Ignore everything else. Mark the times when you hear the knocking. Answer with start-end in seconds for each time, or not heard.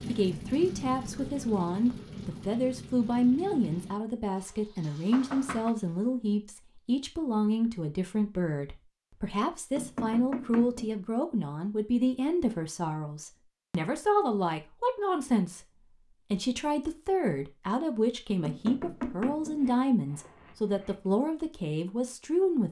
5.1-5.8, 9.8-10.9, 18.4-19.6.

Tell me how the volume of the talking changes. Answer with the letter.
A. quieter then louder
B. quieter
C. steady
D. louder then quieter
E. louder
C.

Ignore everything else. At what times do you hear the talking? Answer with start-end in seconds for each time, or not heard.
0.0-22.6.